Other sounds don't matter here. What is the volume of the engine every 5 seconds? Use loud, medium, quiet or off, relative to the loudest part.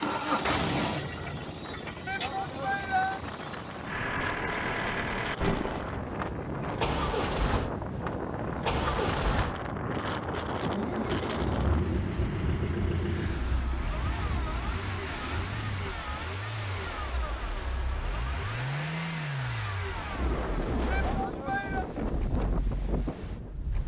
loud, loud, loud, loud, medium.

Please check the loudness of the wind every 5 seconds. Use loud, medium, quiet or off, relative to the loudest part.
medium, loud, loud, medium, loud.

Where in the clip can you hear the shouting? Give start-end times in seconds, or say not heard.
2.0-3.2, 20.9-21.9.